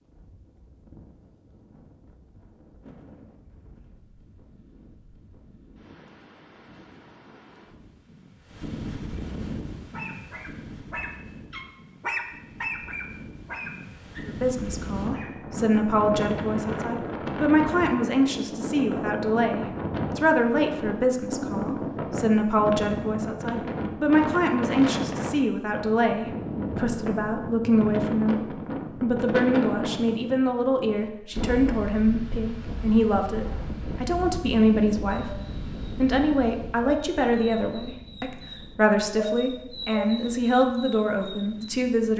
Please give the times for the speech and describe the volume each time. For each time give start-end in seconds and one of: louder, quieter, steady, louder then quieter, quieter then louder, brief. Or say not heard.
14.2-28.4 steady
29.0-42.1 steady.